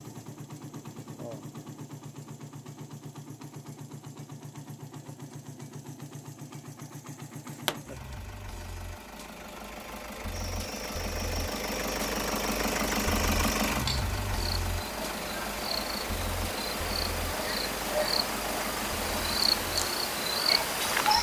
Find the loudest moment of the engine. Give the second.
13 s.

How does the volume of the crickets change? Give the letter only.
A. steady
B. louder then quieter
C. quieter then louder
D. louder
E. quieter
D.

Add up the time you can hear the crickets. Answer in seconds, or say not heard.
11 s.